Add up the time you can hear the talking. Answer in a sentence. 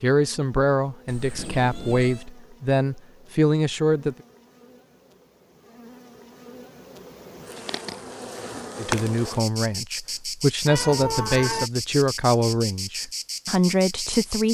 The talking can be heard for 10 seconds in total.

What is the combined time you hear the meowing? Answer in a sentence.
The meowing can be heard for 2 seconds in total.